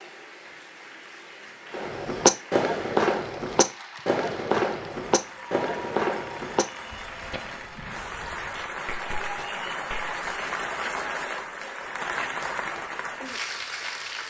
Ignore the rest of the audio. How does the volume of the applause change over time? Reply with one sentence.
The loudness of the applause goes up.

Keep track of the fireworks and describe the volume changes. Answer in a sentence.
The volume of the fireworks goes down.